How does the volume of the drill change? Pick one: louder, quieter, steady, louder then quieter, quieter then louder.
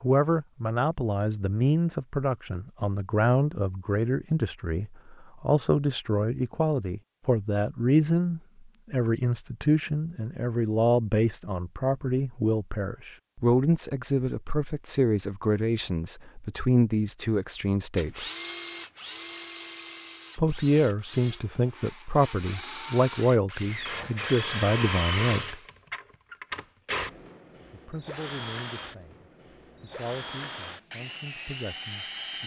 louder then quieter.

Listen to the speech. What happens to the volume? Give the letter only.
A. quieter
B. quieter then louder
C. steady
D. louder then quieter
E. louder
A.